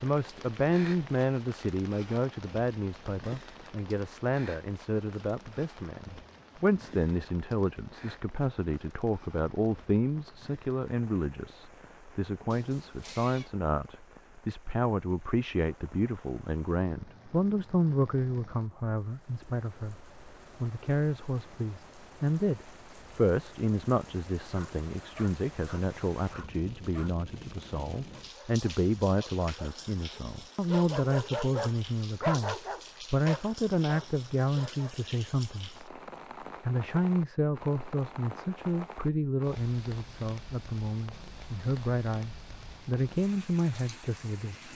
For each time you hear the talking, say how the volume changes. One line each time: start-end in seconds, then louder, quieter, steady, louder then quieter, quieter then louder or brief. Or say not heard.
0.0-35.9 steady
36.6-44.7 quieter then louder.